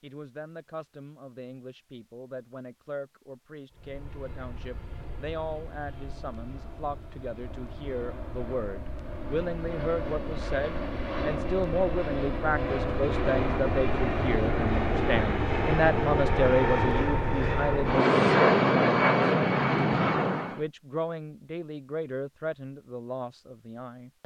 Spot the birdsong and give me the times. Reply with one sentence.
The birdsong can't be heard in this clip.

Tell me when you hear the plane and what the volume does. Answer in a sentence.
You can hear the plane from 3.8 to 20.6 s, getting louder.